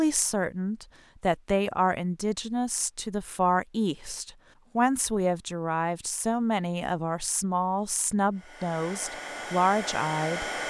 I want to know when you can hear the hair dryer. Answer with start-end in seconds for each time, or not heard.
8.3-10.6.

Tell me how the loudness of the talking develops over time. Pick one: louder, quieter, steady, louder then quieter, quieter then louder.
steady.